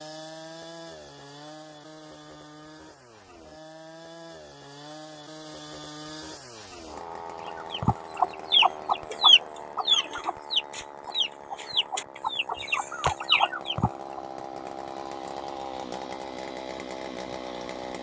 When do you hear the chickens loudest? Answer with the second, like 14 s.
9 s.